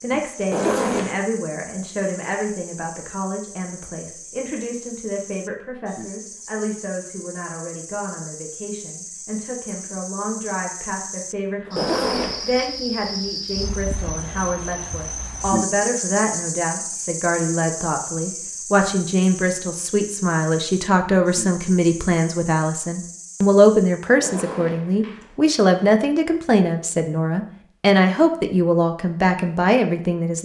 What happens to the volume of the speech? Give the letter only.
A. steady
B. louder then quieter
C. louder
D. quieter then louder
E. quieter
C.